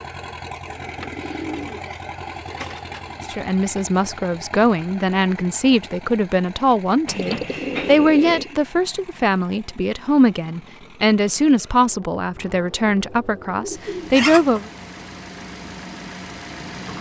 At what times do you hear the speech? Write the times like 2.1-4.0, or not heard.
3.3-14.7.